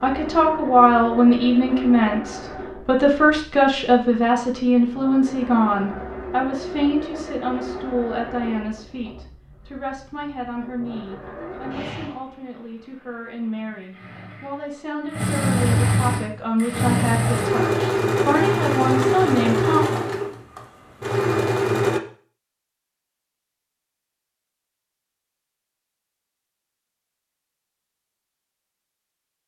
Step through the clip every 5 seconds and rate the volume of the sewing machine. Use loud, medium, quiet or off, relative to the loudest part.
quiet, quiet, quiet, loud, loud, off.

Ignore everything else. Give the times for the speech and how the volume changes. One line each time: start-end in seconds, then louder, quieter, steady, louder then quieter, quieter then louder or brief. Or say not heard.
0.0-19.8 quieter then louder.